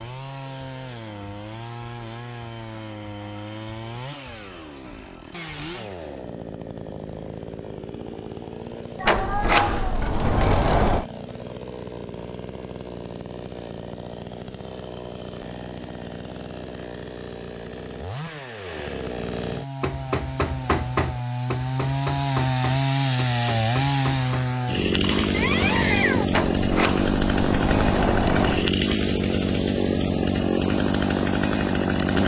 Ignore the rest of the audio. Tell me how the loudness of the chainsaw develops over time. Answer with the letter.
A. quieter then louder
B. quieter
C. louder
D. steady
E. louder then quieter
C.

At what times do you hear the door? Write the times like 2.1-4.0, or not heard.
9.1-11.1, 26.3-28.7.